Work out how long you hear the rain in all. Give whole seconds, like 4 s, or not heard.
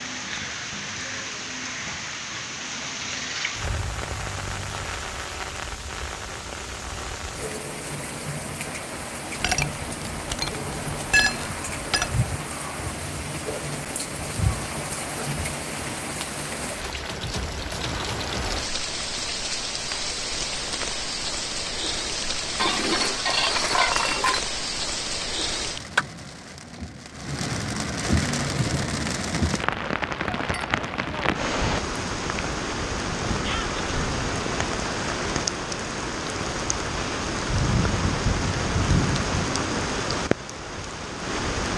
42 s.